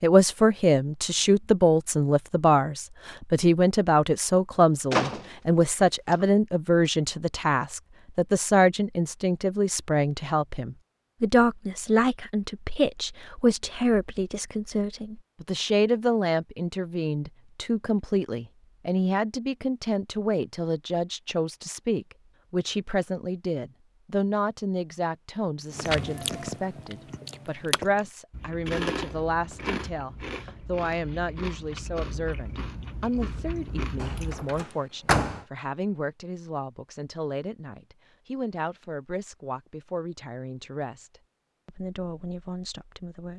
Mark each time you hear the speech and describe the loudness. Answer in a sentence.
The speech can be heard from 0.0 to 43.3 s, getting quieter.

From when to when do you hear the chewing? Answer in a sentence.
The chewing can be heard from 25.7 to 34.6 s.